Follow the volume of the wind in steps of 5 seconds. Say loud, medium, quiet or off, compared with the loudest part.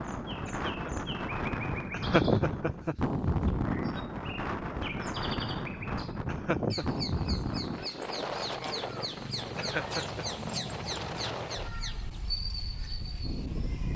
loud, loud, medium.